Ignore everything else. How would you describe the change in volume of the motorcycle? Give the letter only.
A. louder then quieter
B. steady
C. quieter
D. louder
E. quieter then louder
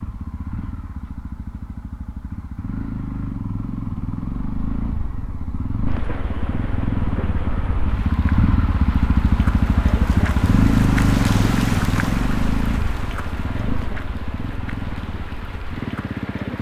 A.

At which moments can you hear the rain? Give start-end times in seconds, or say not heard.
5.8-16.5.